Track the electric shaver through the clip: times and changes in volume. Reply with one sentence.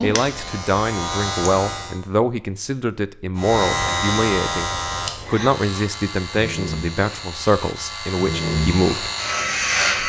You can hear the electric shaver briefly from 0.0 to 2.0 s; and from 3.4 to 10.0 s, getting quieter then louder.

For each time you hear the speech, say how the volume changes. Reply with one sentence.
The speech can be heard from 0.0 to 9.1 s, at a steady volume.